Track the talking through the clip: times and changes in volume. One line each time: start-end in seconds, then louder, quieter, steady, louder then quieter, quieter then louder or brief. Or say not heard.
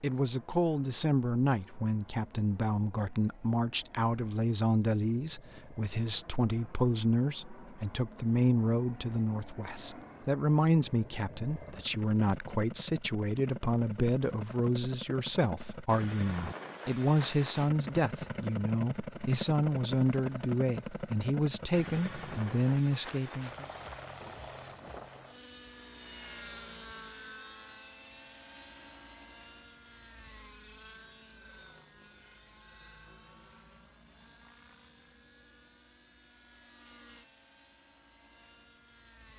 0.0-23.6 steady.